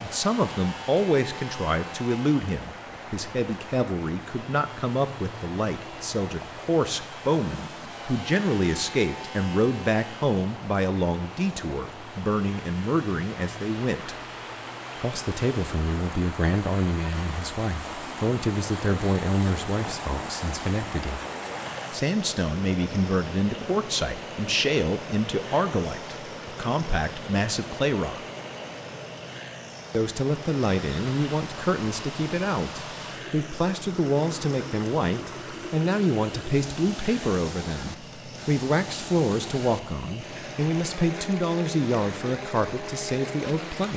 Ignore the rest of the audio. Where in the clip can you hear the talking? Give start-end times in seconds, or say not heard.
0.0-14.2, 15.0-21.2, 21.9-28.2, 29.9-43.9.